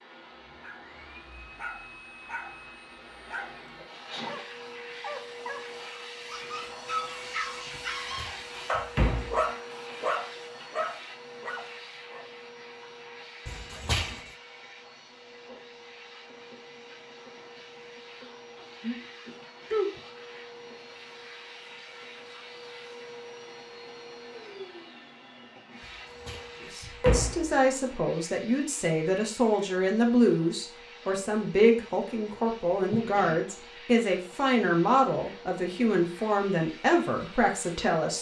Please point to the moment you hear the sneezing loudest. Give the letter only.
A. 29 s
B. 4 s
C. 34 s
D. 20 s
D.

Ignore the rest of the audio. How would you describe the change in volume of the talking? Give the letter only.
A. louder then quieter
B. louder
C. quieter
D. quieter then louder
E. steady
E.